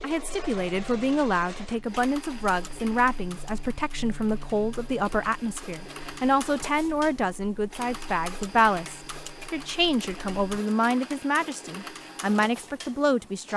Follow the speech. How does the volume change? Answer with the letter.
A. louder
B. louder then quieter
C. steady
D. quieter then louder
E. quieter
C.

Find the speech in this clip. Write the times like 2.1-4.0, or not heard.
0.0-13.5.